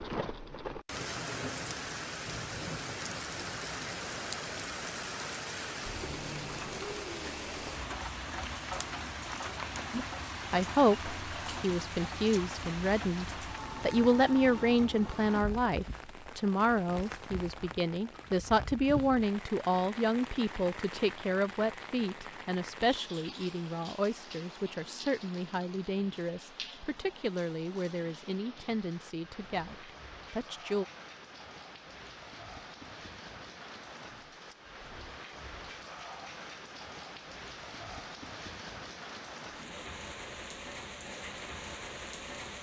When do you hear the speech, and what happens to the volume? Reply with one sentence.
You can hear the speech from 9.9 to 30.9 s, getting quieter.